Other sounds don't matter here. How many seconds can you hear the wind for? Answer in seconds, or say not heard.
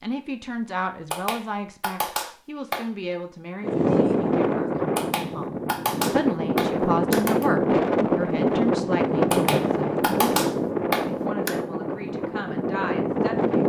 10 s.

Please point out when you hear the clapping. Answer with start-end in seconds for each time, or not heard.
1.1-2.9, 5.0-7.5, 9.3-11.5.